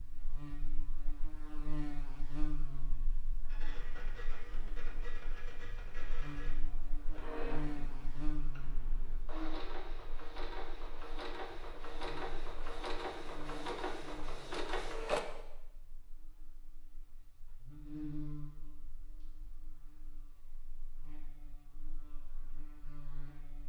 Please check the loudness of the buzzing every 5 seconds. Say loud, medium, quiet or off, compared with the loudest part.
loud, loud, medium, loud, medium.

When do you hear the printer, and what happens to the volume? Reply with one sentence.
You can hear the printer from 3.5 to 15.2 s, getting louder.